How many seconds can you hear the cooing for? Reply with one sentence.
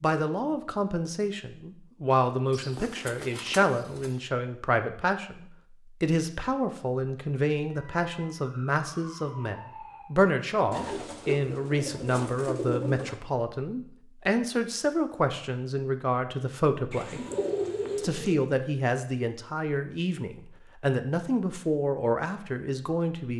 The cooing can be heard for 6 seconds in total.